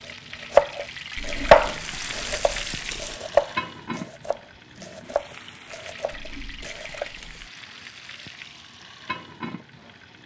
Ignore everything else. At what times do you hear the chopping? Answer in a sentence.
The chopping can be heard from 0.5 to 7.1 s.